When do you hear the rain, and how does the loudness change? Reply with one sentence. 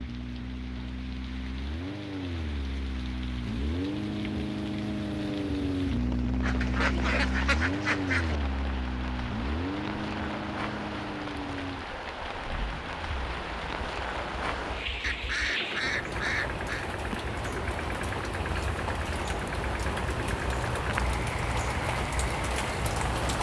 The rain can be heard from 0.0 to 23.3 s, getting louder.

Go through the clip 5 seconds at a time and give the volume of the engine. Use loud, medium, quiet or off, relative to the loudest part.
loud, loud, medium, medium, medium.